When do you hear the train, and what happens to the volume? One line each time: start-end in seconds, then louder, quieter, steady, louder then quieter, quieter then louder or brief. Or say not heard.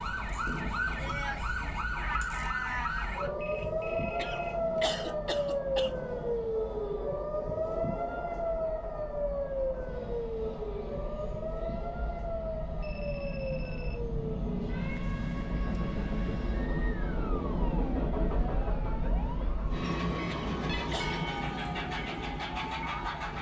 0.0-23.3 louder.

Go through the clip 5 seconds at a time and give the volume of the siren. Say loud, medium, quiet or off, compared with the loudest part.
loud, loud, medium, quiet, medium.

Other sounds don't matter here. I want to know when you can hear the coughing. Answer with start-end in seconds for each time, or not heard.
4.2-6.0, 20.2-21.2.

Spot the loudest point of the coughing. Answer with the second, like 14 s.
5 s.